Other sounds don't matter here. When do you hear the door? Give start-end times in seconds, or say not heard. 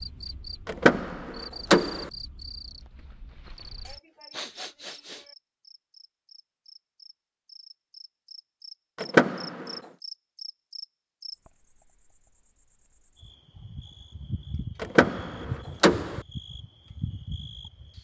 0.7-2.1, 8.9-9.8, 14.8-16.2.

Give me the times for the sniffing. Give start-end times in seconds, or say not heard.
3.9-5.3.